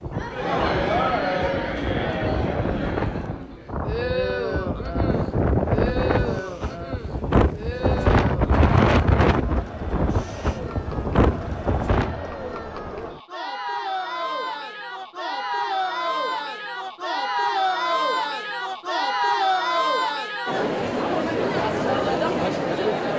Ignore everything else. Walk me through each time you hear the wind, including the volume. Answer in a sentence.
The wind can be heard from 0.0 to 12.2 s, getting louder then quieter.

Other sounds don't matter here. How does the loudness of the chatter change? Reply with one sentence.
The loudness of the chatter goes down, then up.